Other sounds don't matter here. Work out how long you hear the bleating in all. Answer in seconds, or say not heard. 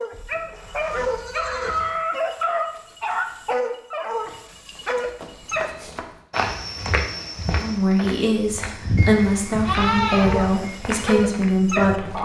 6 s.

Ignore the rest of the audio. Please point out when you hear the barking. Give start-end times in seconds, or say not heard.
0.0-5.7, 10.2-12.2.